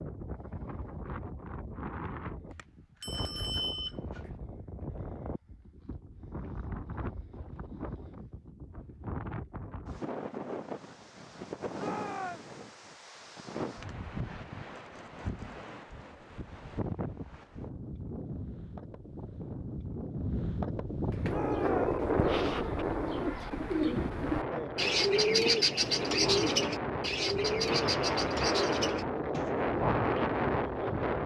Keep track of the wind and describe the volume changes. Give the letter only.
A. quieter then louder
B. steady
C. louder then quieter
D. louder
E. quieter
D.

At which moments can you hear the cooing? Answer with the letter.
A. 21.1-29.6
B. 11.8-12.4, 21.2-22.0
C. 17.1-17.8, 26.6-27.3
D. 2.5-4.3
A.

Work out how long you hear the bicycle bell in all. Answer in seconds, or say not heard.
2 s.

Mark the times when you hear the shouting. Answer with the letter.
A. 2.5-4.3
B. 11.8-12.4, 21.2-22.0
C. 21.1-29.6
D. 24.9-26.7
B.